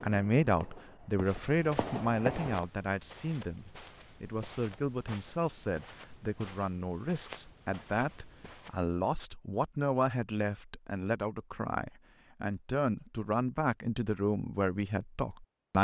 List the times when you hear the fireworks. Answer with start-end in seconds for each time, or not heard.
0.0-2.6.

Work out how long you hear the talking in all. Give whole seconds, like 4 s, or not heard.
16 s.